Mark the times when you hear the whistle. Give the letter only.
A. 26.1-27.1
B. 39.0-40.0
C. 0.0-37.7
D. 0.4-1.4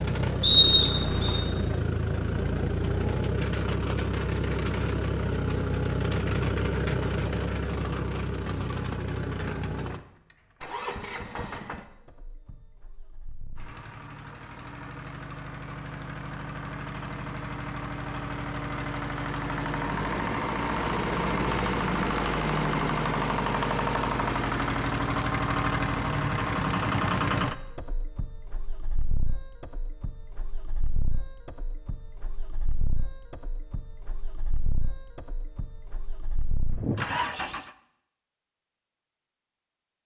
D.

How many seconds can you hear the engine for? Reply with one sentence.
The engine can be heard for 38 seconds in total.